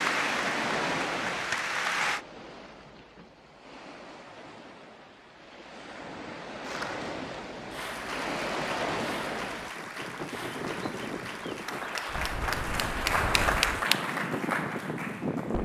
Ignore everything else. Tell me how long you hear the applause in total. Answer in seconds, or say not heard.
11 s.